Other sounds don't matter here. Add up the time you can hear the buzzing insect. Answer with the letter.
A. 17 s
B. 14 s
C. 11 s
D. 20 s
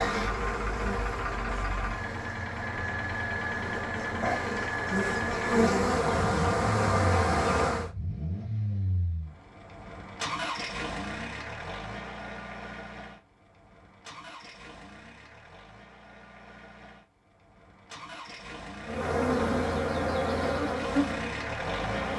C.